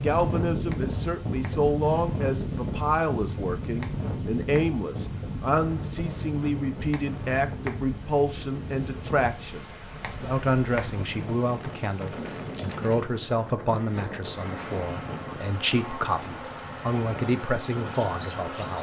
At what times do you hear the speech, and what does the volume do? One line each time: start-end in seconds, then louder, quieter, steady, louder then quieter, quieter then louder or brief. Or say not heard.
0.0-18.7 steady.